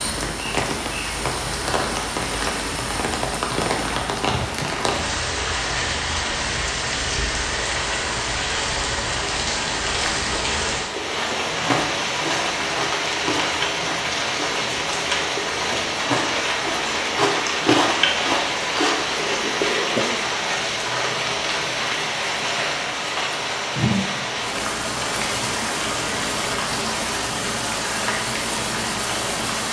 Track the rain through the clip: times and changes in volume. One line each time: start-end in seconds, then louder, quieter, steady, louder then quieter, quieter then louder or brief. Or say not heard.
0.0-29.6 steady.